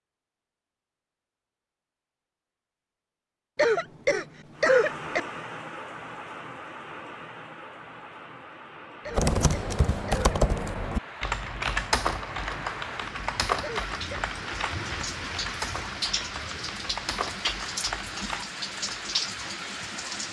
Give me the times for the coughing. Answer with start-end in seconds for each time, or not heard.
3.5-5.2, 9.1-10.3, 13.6-14.2.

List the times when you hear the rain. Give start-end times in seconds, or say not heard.
4.5-20.2.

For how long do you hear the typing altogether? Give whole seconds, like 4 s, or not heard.
10 s.